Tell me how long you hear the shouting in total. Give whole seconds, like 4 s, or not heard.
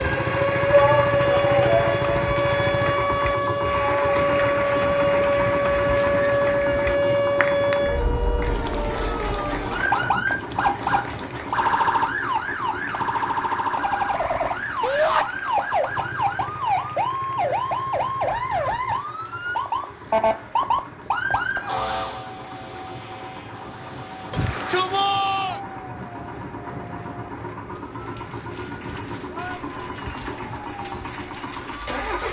3 s.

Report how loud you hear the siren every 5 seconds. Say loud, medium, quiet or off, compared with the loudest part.
loud, loud, loud, loud, medium, quiet, quiet.